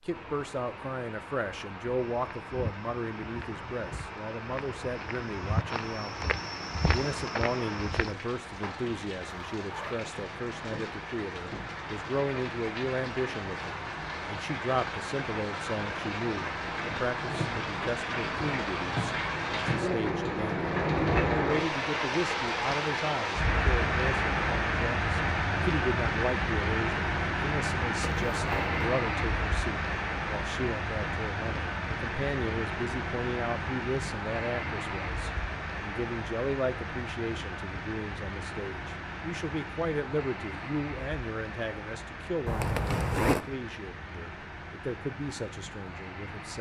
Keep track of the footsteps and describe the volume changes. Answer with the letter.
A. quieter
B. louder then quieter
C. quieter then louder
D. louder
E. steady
C.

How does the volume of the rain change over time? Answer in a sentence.
The loudness of the rain goes up, then down.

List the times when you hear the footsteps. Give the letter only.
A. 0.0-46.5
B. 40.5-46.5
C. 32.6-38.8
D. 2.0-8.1
D.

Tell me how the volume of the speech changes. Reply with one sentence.
The volume of the speech stays about the same.